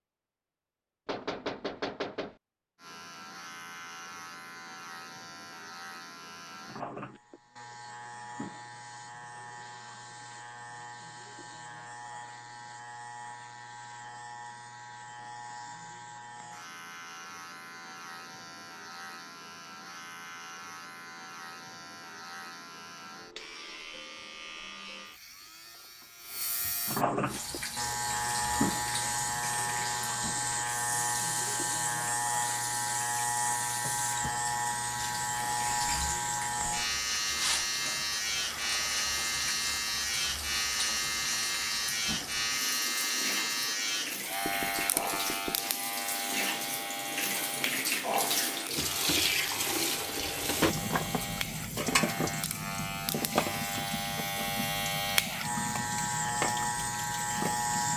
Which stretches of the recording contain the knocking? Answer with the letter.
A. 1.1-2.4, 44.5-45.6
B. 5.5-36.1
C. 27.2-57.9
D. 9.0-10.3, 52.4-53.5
A.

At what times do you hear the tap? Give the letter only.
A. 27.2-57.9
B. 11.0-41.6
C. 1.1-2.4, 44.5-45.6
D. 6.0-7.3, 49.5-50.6
A.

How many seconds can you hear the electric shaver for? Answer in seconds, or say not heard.
55 s.